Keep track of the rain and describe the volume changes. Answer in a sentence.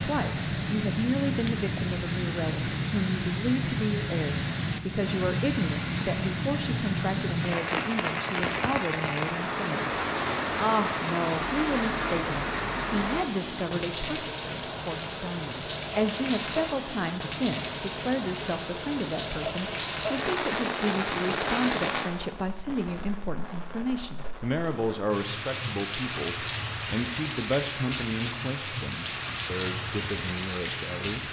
The volume of the rain stays about the same.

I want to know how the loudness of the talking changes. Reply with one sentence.
The volume of the talking stays about the same.